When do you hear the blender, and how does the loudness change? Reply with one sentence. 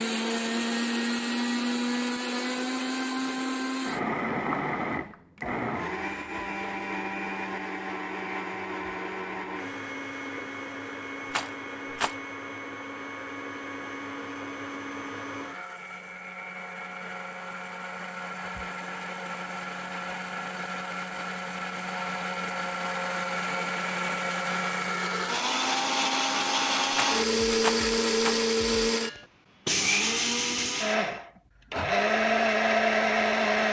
You can hear the blender from 0.0 to 33.6 s, getting quieter then louder.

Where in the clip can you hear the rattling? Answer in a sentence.
The rattling can be heard from 11.3 to 12.2 s and from 26.9 to 28.4 s.